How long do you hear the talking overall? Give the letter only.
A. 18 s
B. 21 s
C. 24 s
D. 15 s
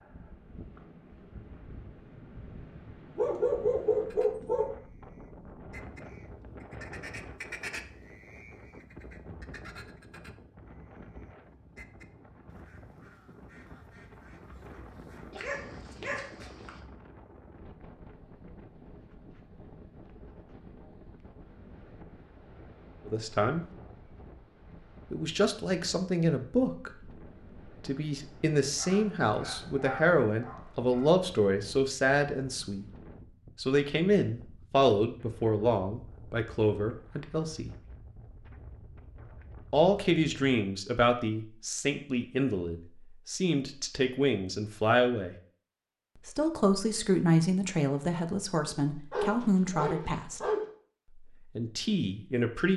C.